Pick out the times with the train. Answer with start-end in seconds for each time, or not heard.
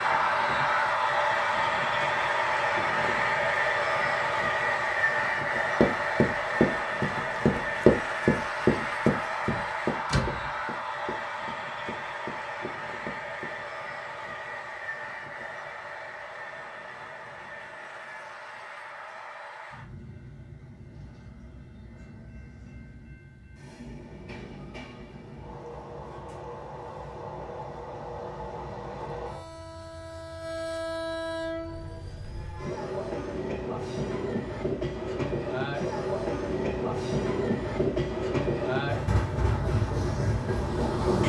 0.0-41.2.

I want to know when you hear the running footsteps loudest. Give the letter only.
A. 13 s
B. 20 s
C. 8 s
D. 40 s
C.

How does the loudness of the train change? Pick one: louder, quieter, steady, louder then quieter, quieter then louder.
quieter then louder.